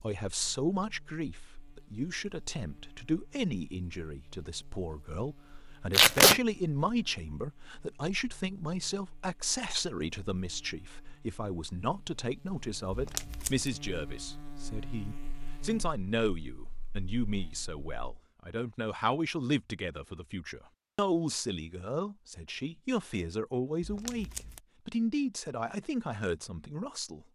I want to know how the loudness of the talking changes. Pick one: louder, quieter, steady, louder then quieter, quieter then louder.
steady.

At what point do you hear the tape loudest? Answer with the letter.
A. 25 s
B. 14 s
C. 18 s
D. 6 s
D.